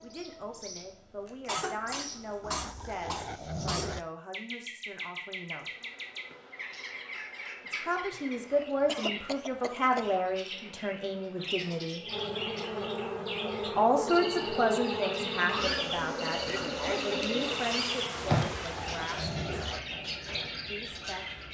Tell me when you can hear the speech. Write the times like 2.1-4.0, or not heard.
0.0-5.7, 7.7-12.0, 13.7-20.0, 20.7-21.2.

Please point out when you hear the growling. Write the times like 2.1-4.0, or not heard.
2.4-4.0, 18.1-19.8.